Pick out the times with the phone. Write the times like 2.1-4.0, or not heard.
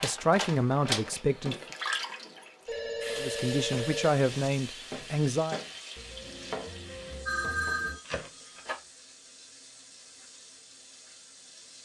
2.6-4.2, 7.2-8.8.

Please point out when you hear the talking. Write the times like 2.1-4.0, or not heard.
0.0-1.6, 3.1-5.6.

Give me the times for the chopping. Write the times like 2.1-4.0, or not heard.
3.0-8.4.